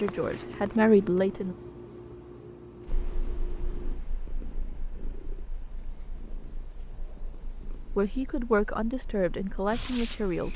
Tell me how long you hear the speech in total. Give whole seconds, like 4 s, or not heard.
4 s.